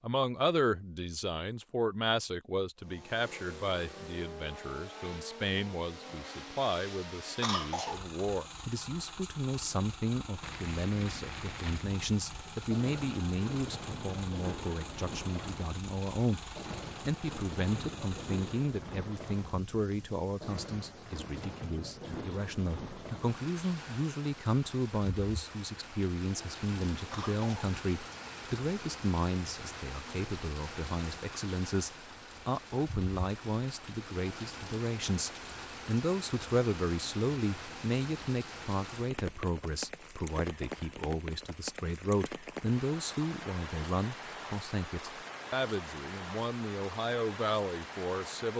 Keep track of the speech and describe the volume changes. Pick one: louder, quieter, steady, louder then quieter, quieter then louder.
steady.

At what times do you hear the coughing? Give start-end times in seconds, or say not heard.
7.4-8.1, 27.1-27.8.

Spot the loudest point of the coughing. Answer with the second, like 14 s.
8 s.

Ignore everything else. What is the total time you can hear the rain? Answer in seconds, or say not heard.
38 s.